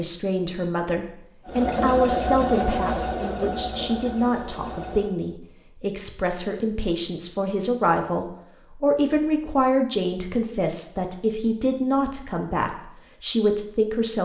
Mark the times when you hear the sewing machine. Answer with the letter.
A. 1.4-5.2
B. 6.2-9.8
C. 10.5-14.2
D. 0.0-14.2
A.